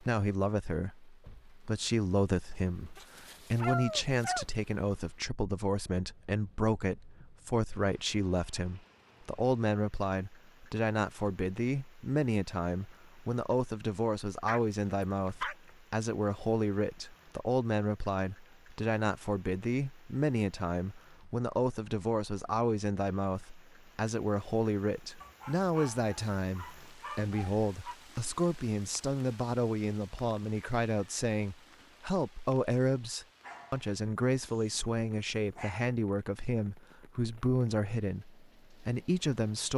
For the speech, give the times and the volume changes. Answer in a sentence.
You can hear the speech from 0.0 to 39.7 s, at a steady volume.